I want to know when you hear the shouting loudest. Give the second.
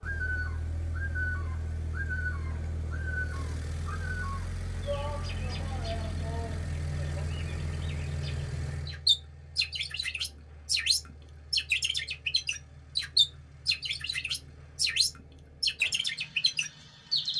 5 s.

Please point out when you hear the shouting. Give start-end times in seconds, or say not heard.
4.8-7.2.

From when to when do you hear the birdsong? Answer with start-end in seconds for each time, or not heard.
0.0-17.3.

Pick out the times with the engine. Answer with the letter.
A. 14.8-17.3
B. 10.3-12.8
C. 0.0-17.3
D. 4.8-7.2
C.